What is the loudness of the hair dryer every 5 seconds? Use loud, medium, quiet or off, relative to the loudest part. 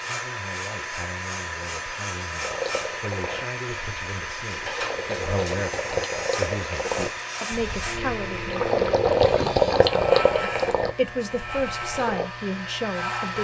loud, loud, medium.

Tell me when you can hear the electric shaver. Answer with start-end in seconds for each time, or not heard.
0.0-13.3.